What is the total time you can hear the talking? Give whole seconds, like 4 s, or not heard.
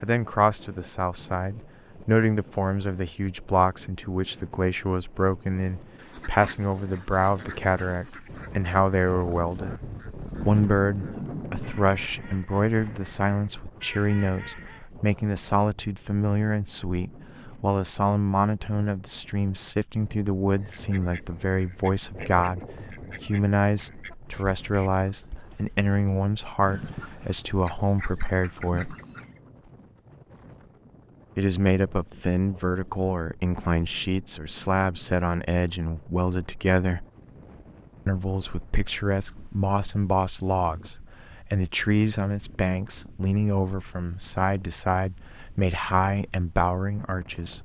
44 s.